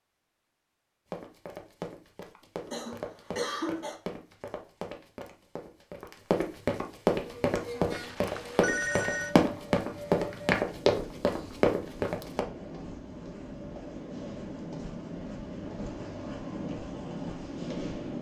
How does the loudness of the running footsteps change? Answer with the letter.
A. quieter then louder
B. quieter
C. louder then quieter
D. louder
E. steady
D.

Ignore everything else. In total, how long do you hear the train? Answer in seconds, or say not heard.
11 s.